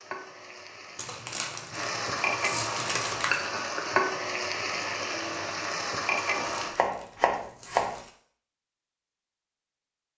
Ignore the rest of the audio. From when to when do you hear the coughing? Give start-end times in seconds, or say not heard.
not heard.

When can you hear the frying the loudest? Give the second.
4 s.